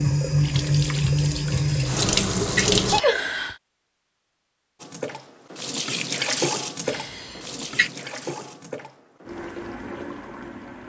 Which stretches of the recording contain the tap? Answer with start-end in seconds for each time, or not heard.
0.0-3.0, 4.8-10.8.